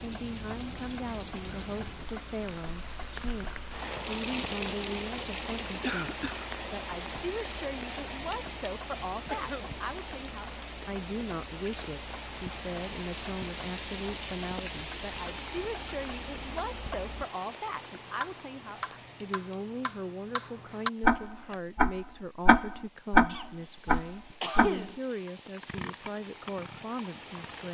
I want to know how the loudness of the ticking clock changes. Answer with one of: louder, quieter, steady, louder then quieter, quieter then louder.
louder.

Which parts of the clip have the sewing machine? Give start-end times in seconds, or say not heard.
not heard.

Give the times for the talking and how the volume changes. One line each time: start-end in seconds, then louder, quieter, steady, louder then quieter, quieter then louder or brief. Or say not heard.
0.0-27.6 steady.